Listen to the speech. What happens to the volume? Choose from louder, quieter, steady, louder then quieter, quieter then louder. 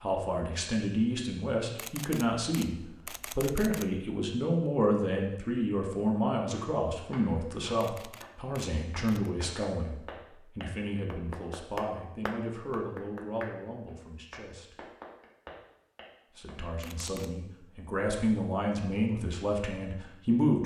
quieter then louder.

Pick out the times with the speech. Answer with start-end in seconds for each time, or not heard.
0.0-9.9, 10.6-14.8, 16.4-20.6.